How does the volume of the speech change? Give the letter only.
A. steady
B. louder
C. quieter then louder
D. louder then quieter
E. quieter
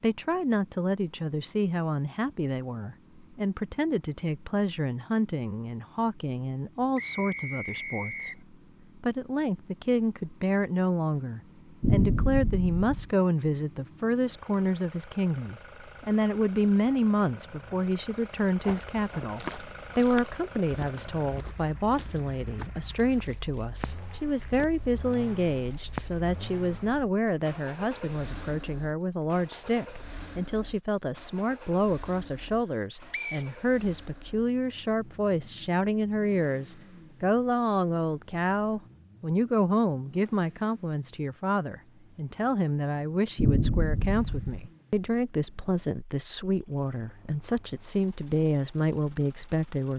A.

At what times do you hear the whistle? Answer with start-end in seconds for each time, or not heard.
7.0-8.4, 33.1-34.2.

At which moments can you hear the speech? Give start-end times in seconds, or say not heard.
0.0-8.3, 9.0-49.9.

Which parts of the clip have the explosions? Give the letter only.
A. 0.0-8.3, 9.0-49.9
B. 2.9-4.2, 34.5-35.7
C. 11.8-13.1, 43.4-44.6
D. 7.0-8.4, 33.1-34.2
C.